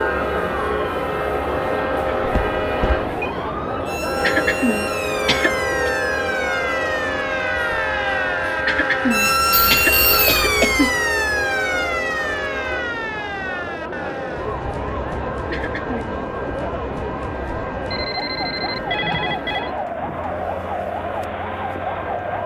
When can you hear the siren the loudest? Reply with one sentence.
The volume of the siren peaks at 10 seconds.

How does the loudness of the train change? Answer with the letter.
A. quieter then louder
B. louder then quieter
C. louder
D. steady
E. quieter
E.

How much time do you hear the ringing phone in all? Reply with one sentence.
You can hear the ringing phone for 4 seconds altogether.